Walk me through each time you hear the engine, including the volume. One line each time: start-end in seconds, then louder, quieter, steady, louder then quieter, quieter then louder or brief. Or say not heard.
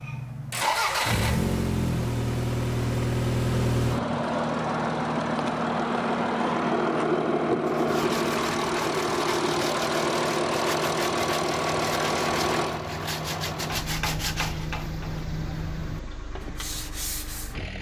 0.0-17.7 quieter.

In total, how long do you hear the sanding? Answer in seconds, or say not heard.
10 s.